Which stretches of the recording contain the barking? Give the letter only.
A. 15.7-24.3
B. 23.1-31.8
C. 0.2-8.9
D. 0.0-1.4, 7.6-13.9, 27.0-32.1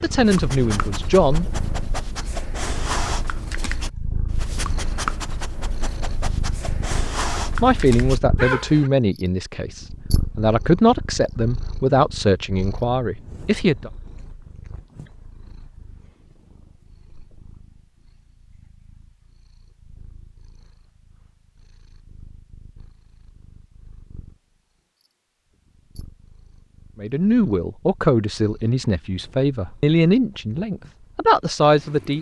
C.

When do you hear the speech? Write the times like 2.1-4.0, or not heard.
0.0-1.4, 7.6-13.9, 27.0-32.1.